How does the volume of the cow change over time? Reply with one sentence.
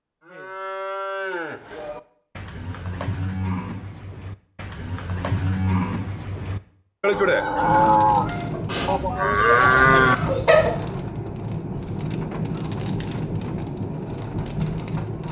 The loudness of the cow goes up.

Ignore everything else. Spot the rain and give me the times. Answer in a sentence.
You can hear the rain from 7.5 to 15.2 s.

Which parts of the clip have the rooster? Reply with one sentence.
The rooster can be heard from 7.1 to 10.7 s.